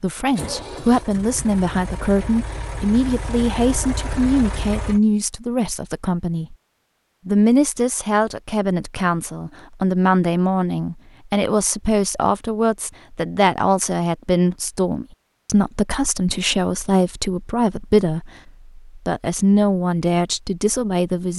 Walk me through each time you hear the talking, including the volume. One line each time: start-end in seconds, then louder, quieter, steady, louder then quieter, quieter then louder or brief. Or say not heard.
0.0-6.5 steady
7.2-21.3 steady.